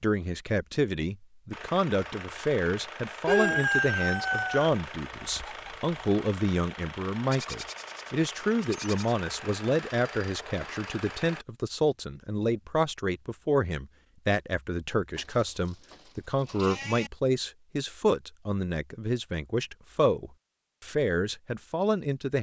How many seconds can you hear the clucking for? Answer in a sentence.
The clucking can be heard for 3 seconds in total.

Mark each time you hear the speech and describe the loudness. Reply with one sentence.
You can hear the speech from 0.0 to 22.3 s, at a steady volume.